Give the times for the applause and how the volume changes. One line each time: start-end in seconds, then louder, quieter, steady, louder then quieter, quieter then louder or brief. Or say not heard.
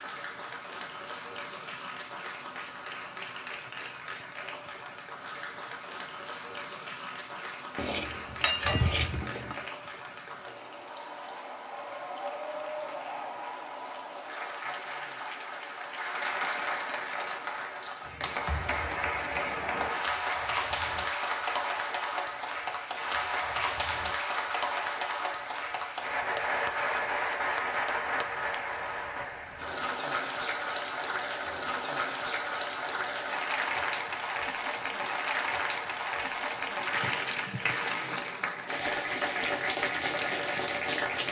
0.0-41.2 louder.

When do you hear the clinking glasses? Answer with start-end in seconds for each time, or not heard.
7.8-9.6.